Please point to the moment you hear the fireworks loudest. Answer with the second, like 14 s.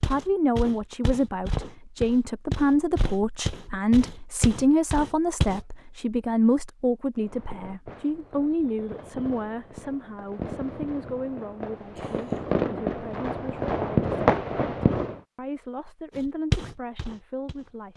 14 s.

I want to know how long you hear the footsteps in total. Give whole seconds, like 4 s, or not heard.
7 s.